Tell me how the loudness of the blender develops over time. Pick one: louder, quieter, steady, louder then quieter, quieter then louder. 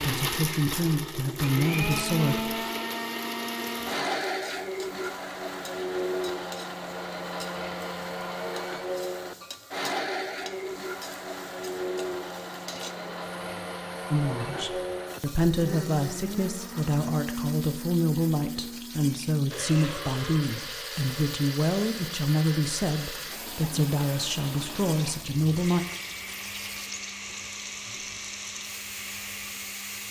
quieter.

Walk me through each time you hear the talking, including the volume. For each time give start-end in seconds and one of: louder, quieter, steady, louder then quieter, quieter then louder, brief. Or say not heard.
0.0-2.6 brief
14.1-25.9 steady.